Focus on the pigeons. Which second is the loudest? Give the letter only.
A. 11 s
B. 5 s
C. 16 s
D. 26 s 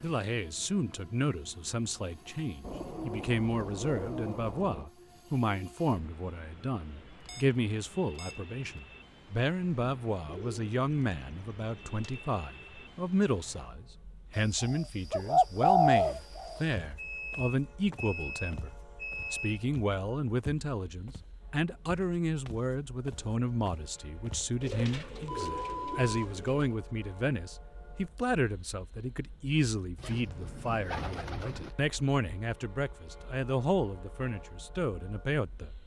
C.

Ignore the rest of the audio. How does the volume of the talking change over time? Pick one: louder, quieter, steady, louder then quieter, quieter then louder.
steady.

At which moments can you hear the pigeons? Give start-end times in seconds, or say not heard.
2.6-4.9, 10.2-12.2, 14.3-16.6, 24.6-26.8, 29.9-31.8.